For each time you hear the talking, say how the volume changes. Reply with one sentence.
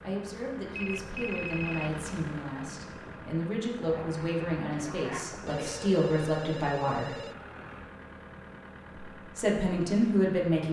You can hear the talking from 0.0 to 7.2 s, getting louder; and briefly from 9.2 to 10.6 s.